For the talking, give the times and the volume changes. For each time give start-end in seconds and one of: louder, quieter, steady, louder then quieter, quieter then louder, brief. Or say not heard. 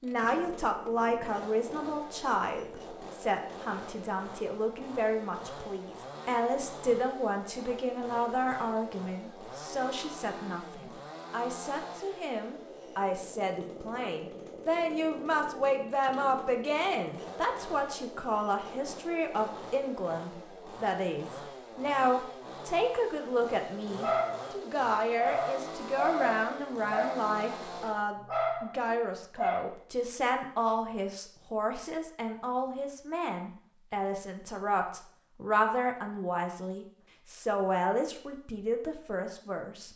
0.0-39.9 steady.